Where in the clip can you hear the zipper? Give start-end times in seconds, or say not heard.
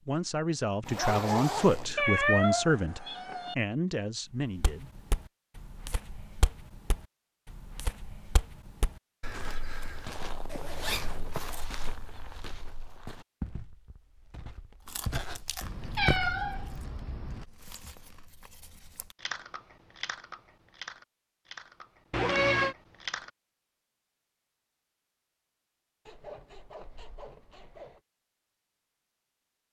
0.8-1.9, 10.5-11.3, 26.1-28.0.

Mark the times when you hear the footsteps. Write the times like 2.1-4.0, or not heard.
4.4-16.4.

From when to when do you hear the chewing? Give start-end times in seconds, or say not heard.
14.8-23.3.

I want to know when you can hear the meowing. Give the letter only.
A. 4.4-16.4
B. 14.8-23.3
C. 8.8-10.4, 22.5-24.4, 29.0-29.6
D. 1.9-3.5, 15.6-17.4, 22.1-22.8
D.